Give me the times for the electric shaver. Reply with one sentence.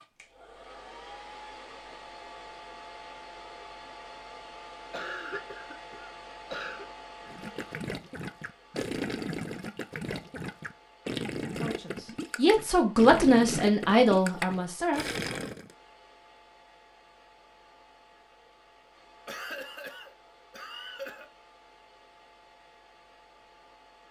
The electric shaver can't be heard in this clip.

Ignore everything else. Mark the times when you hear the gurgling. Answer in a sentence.
The gurgling can be heard from 7.2 to 15.8 s.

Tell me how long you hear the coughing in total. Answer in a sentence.
The coughing can be heard for 4 seconds in total.